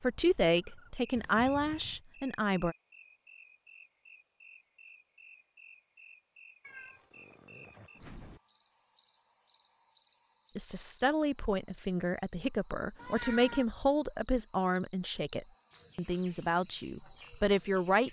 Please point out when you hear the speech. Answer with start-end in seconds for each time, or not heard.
0.0-2.8, 10.6-18.0.